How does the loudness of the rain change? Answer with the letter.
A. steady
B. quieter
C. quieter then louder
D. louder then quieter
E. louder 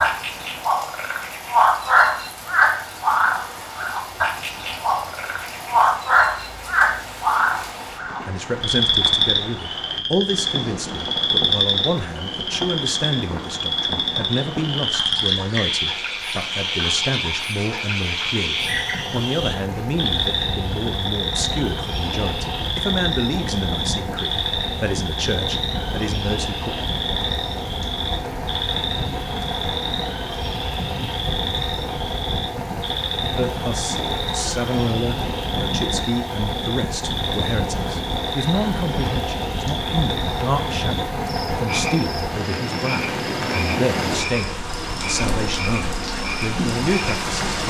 E.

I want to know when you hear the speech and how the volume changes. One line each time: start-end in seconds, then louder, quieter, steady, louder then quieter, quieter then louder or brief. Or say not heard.
8.2-26.8 steady
33.4-47.6 steady.